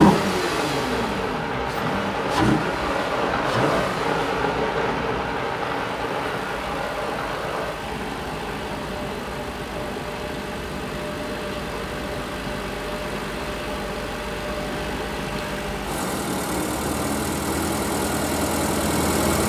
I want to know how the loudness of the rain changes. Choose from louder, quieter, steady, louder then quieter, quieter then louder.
quieter.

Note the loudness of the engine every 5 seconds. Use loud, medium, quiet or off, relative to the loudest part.
loud, medium, medium, loud.